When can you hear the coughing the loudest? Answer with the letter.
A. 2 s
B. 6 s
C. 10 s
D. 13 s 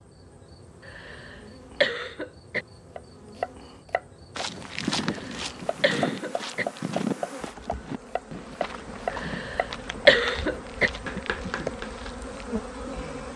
C.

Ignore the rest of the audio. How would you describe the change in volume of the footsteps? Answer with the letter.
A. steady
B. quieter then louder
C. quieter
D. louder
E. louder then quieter
C.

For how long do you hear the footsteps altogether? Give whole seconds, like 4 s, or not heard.
8 s.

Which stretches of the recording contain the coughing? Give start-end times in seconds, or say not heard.
0.8-2.6, 5.0-6.7, 9.1-10.9.